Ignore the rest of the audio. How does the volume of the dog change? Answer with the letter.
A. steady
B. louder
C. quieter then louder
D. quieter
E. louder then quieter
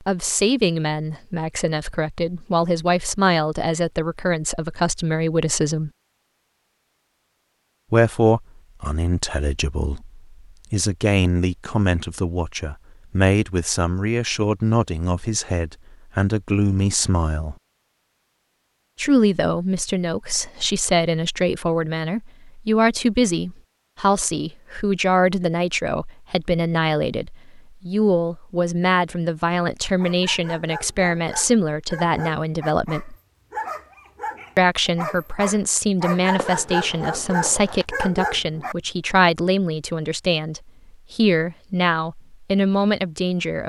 B.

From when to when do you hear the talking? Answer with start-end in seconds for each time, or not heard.
0.1-5.9, 7.9-17.6, 18.9-33.1, 34.5-43.6.